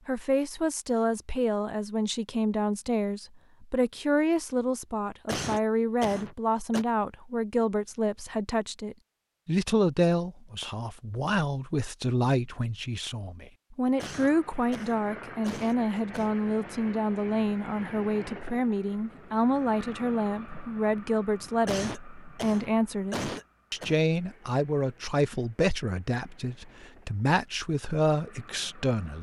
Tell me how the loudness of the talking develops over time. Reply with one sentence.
The loudness of the talking stays about the same.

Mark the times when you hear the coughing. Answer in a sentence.
You can hear the coughing from 5.2 to 6.8 s, from 13.9 to 16.4 s and from 21.6 to 23.9 s.